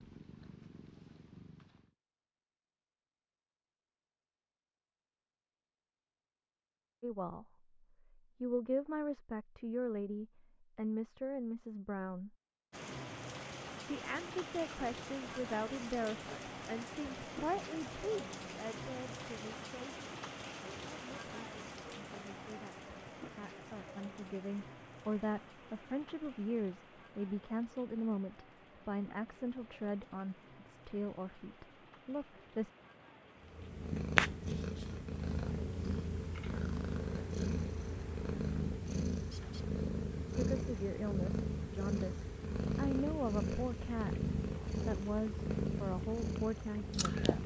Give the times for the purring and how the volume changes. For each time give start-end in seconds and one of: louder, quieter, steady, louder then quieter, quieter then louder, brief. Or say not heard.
0.0-1.9 brief
33.4-47.4 steady.